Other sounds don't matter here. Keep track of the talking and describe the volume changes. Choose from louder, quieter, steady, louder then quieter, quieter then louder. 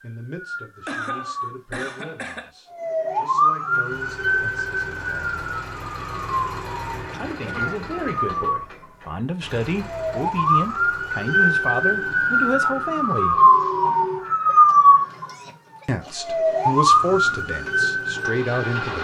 louder.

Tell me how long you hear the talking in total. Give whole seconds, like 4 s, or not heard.
15 s.